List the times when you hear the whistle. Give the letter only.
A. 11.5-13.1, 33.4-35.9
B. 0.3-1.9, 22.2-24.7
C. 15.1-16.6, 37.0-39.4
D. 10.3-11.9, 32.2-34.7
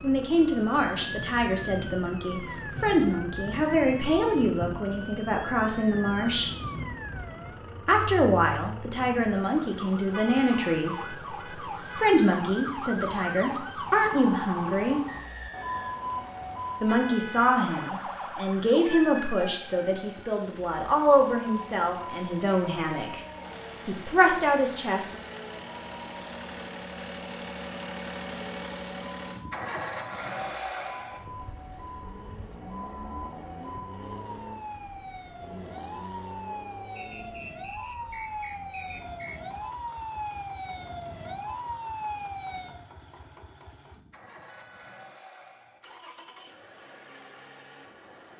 C.